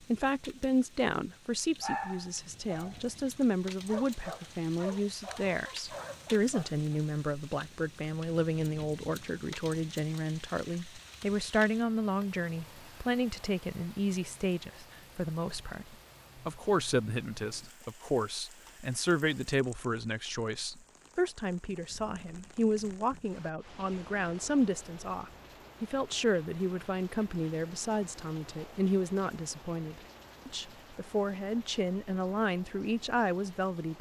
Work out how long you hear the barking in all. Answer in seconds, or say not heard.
5 s.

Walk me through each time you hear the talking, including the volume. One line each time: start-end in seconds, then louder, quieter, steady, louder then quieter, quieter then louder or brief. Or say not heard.
0.1-33.9 steady.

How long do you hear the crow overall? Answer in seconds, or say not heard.
not heard.